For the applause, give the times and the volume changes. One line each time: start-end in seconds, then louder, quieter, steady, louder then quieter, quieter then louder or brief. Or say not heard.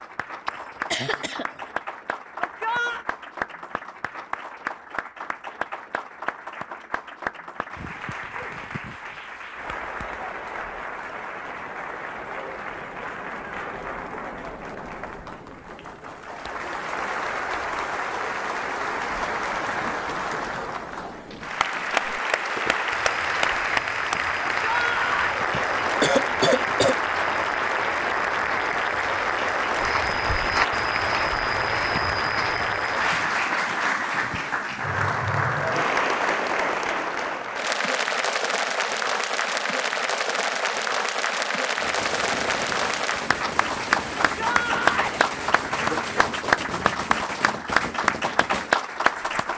0.0-49.5 louder.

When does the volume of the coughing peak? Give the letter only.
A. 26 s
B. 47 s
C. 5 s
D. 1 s
A.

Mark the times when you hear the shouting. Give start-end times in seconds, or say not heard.
2.4-3.0, 24.6-25.4, 44.4-45.2.